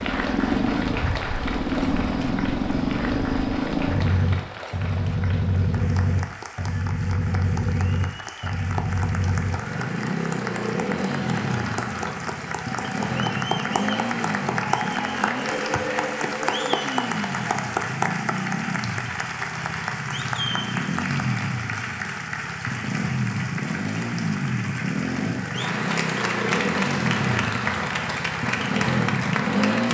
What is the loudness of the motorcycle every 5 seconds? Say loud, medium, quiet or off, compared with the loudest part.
loud, loud, loud, medium, loud, loud.